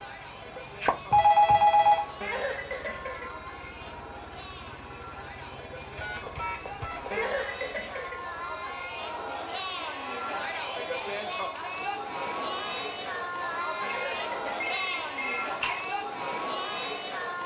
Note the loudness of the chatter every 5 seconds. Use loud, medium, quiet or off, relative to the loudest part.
medium, medium, loud, loud.